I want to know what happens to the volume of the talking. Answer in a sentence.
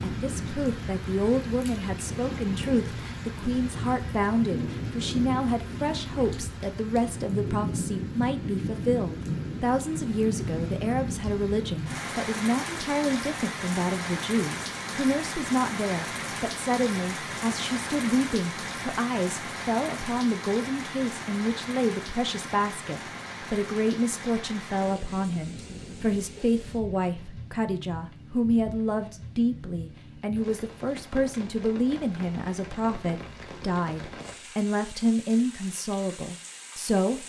The volume of the talking stays about the same.